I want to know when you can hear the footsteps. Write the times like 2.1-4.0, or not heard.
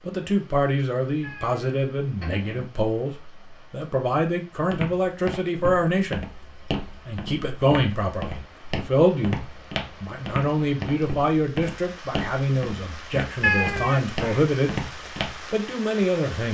4.7-15.8.